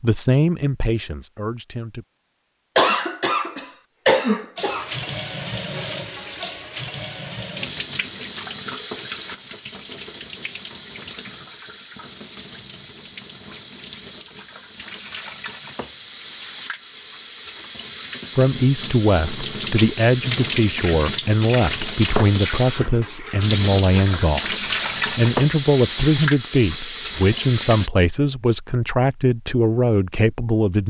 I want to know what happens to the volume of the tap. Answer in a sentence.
The volume of the tap goes down, then up.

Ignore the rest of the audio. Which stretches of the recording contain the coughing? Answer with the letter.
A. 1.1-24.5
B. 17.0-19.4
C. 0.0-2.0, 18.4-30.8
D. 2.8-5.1
D.